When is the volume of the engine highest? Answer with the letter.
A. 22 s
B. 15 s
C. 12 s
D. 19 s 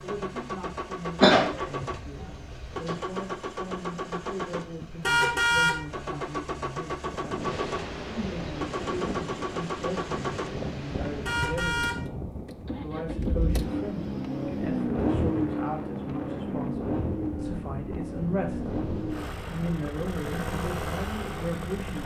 B.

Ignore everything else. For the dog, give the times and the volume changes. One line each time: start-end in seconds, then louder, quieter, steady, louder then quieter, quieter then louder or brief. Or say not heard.
not heard.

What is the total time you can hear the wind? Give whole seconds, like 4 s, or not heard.
15 s.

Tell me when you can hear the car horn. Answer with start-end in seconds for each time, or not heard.
5.0-5.8, 11.2-12.0.